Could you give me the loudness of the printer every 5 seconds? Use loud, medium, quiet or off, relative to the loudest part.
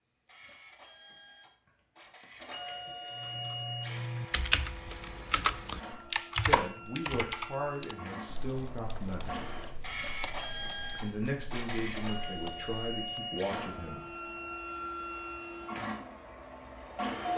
medium, medium, loud, loud.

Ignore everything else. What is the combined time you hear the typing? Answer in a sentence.
The typing can be heard for 10 seconds in total.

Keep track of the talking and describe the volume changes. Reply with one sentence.
The volume of the talking stays about the same.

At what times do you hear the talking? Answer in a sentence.
You can hear the talking from 6.3 to 9.4 s and from 11.0 to 14.1 s.